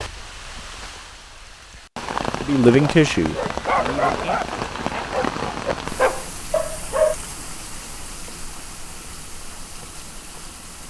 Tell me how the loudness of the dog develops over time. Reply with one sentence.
The volume of the dog goes down, then up.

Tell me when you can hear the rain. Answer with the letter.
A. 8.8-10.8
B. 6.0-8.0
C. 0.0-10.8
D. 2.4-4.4
C.